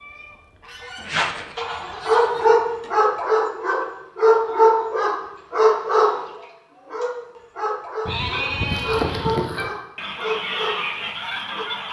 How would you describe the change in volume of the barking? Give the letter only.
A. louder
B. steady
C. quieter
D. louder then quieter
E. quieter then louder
C.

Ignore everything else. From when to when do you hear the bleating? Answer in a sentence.
You can hear the bleating from 0.9 to 2.9 s and from 8.1 to 9.4 s.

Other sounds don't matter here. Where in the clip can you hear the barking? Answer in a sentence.
You can hear the barking from 1.6 to 11.7 s.